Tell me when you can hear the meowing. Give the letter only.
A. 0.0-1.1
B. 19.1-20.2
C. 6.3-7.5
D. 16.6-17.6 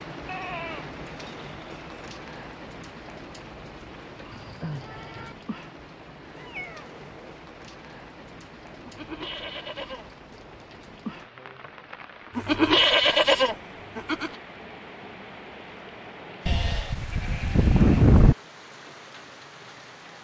C.